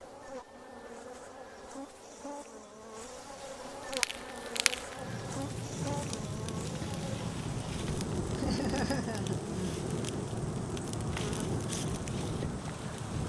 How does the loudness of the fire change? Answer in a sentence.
The volume of the fire stays about the same.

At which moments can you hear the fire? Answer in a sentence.
The fire can be heard from 3.8 to 13.2 s.